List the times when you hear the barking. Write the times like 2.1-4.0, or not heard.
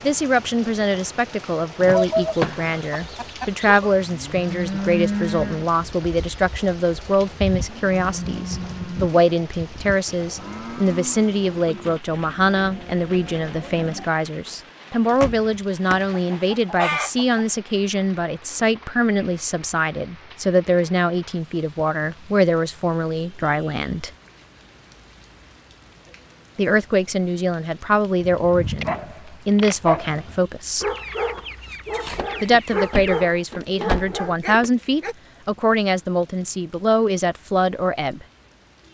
28.2-35.1.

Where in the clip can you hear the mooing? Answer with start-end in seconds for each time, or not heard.
4.0-14.1.